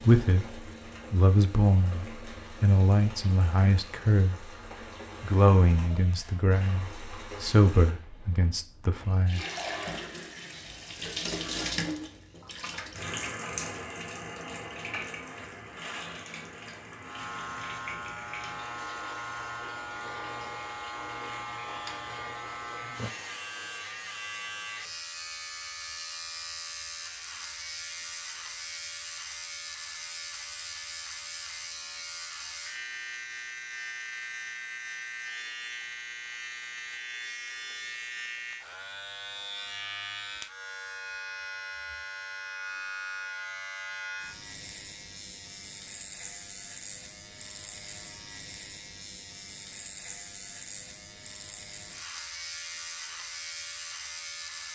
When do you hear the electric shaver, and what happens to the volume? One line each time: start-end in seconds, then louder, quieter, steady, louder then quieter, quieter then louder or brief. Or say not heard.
16.9-54.7 steady.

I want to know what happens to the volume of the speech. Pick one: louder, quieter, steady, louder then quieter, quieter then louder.
quieter.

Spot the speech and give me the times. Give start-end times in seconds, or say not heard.
0.0-4.5, 5.2-9.4.